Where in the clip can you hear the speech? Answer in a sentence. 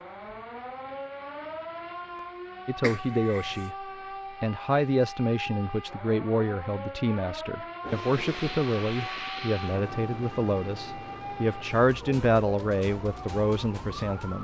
You can hear the speech from 2.6 to 14.3 s.